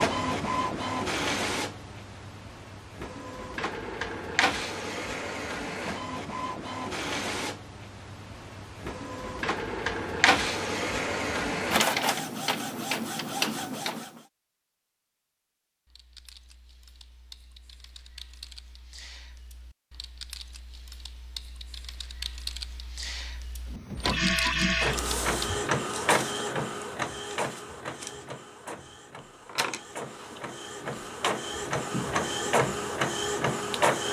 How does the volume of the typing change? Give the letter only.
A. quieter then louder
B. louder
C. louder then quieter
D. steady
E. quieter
B.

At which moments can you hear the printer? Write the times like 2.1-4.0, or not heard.
0.0-14.2, 23.7-34.0.